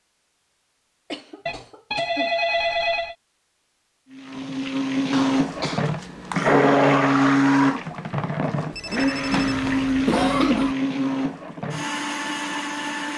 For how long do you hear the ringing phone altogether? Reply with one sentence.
You can hear the ringing phone for 3 seconds altogether.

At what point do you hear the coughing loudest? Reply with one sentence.
The volume of the coughing peaks at 10 seconds.